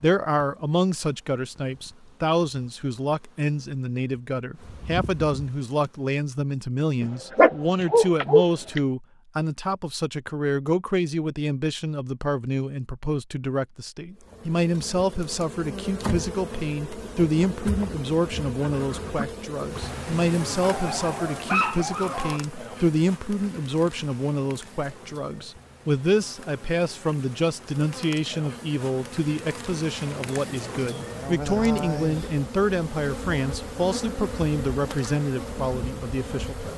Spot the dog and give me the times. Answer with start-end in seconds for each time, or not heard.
7.0-8.8, 20.6-22.4.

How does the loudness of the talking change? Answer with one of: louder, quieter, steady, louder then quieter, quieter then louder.
steady.